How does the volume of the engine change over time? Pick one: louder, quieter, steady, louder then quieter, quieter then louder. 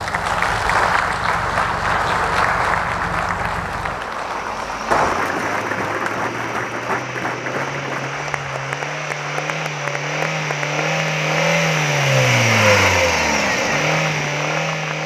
louder.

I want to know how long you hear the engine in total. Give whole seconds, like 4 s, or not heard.
15 s.